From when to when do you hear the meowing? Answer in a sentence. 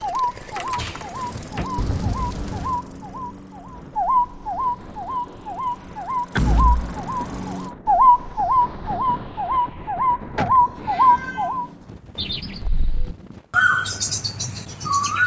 You can hear the meowing from 1.8 to 2.8 s, from 6.8 to 7.5 s and from 10.8 to 11.8 s.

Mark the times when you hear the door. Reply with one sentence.
The door can be heard from 0.3 to 1.7 s, from 6.3 to 6.8 s and from 10.3 to 11.1 s.